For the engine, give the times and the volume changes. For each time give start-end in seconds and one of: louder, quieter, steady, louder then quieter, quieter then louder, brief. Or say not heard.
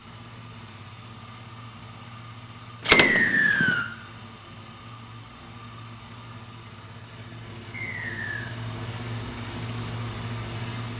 0.0-10.9 louder.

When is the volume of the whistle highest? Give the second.
3 s.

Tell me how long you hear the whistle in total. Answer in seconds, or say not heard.
2 s.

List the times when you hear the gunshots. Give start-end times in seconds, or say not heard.
2.9-3.9.